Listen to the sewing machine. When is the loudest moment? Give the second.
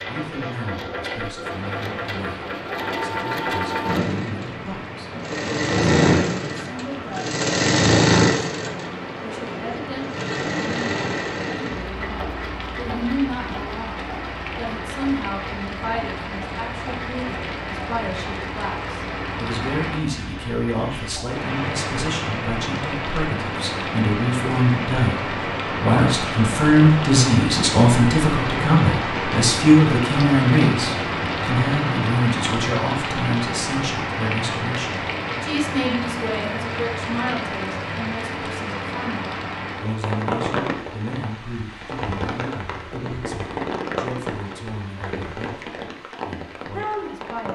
8 s.